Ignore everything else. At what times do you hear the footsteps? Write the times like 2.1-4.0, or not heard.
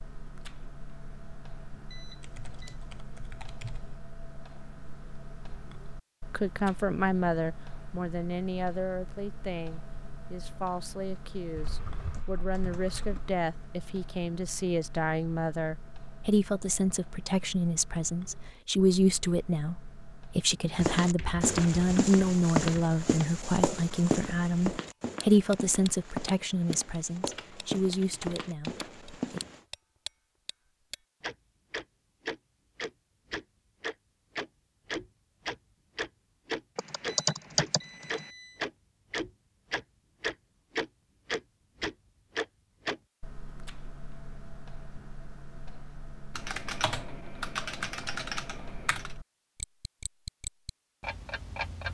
20.8-29.6.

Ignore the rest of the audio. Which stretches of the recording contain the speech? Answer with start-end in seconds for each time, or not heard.
6.3-29.4.